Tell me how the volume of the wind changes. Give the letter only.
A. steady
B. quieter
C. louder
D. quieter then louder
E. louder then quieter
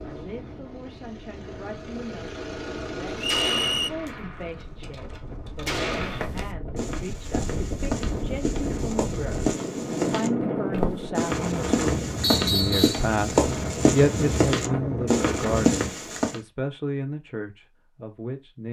C.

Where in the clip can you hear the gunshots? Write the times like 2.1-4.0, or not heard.
3.2-6.2.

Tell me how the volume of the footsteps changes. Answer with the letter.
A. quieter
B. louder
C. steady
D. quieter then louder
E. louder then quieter
B.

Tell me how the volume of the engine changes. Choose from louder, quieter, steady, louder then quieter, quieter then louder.
louder.